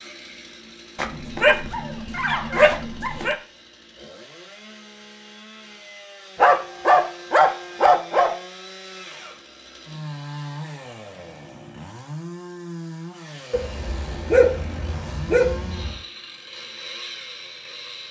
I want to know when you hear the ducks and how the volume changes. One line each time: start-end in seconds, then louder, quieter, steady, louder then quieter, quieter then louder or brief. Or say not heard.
not heard.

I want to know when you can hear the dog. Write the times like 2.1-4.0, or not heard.
0.9-3.4, 6.3-8.3, 13.5-15.9.